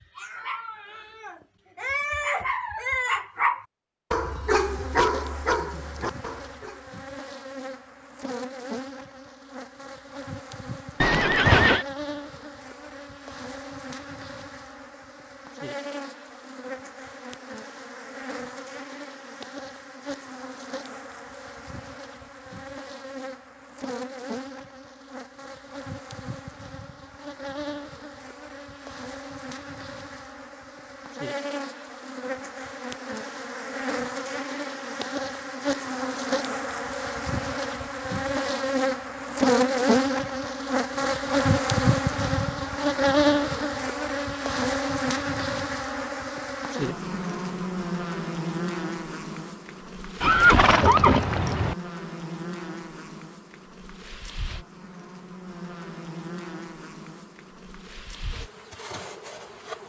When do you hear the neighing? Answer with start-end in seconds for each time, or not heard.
11.0-11.8, 50.2-51.8.